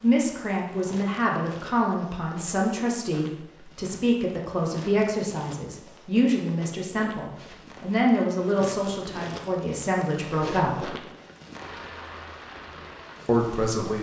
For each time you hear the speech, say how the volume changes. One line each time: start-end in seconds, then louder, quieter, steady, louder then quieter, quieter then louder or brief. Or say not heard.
0.0-10.9 steady
13.2-13.9 brief.